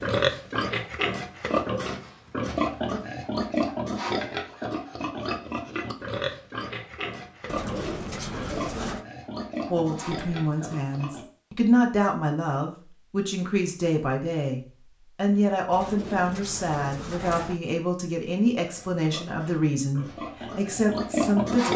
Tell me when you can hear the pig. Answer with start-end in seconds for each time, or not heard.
0.0-11.2, 18.7-21.7.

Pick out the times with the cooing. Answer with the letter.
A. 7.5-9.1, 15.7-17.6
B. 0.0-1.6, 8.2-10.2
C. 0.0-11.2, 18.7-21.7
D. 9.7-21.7
A.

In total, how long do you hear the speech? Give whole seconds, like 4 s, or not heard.
12 s.